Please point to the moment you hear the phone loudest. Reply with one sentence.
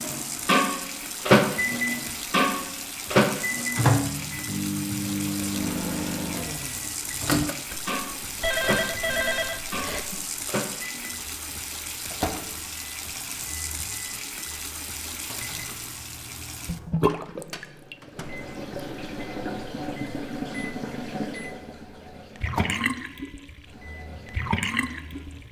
The volume of the phone peaks at 9 seconds.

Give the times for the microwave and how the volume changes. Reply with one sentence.
You can hear the microwave from 0.0 to 25.4 s, getting quieter.